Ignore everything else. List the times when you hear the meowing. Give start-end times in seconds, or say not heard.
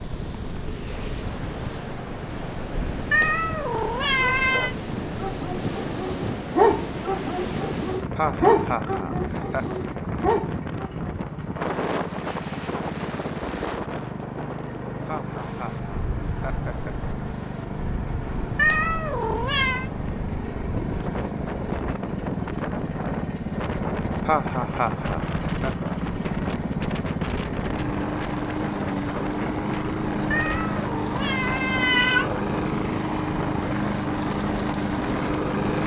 3.1-4.8, 18.6-19.9, 30.3-32.3.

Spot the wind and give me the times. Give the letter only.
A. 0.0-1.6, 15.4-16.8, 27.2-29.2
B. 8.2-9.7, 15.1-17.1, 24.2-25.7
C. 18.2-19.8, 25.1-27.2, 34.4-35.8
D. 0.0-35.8
D.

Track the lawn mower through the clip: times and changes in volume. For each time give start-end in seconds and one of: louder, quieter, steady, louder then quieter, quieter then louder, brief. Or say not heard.
0.0-35.8 louder.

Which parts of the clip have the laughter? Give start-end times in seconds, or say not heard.
8.2-9.7, 15.1-17.1, 24.2-25.7.